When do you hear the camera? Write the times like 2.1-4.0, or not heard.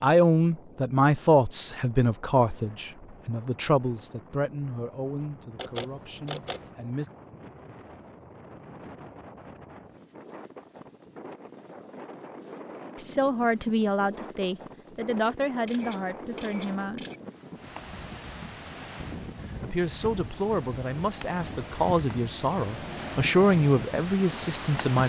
5.5-6.6, 15.7-17.2.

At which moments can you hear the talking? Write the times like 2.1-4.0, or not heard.
0.0-7.1, 12.9-17.1, 19.6-25.0.